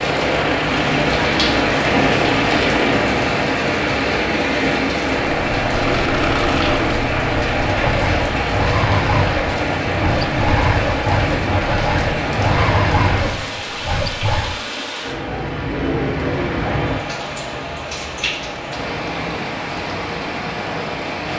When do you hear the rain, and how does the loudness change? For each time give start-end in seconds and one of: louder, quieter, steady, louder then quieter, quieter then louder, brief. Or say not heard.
0.0-21.3 quieter.